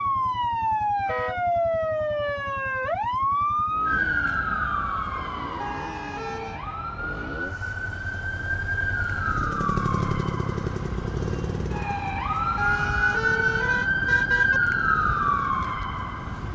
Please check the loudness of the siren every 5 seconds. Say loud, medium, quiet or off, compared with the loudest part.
loud, medium, loud, loud.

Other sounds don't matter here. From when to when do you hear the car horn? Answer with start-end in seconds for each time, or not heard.
5.6-6.6, 12.6-14.6.